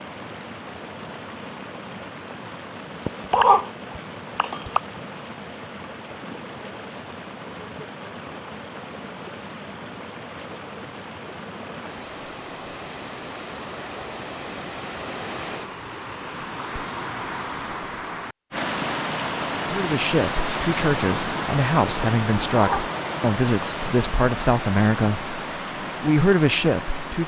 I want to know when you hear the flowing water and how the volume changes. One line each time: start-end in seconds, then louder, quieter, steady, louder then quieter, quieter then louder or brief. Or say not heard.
0.0-27.2 louder.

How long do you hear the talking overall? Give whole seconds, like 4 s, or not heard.
7 s.